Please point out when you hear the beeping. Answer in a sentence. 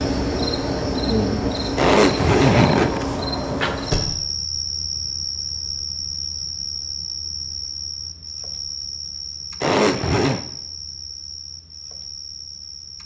The beeping can't be heard in this clip.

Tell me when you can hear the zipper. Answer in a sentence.
The zipper can be heard from 1.8 to 3.0 s and from 9.6 to 10.4 s.